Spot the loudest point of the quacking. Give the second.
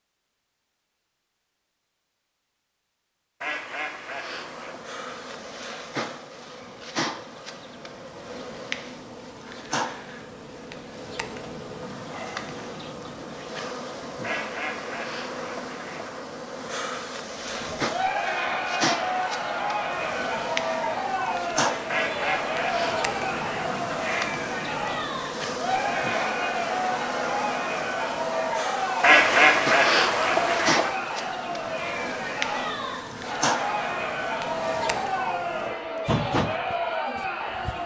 29 s.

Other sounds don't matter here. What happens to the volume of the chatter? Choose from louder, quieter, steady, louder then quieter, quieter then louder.
steady.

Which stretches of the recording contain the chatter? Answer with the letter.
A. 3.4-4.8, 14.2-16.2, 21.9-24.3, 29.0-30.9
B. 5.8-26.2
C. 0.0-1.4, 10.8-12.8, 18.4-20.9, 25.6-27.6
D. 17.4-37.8
D.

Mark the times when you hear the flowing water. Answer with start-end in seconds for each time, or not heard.
not heard.